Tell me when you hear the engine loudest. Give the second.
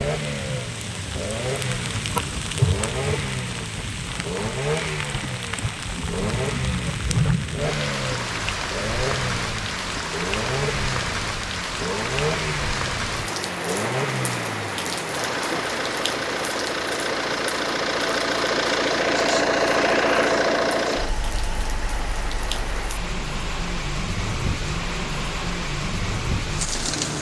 20 s.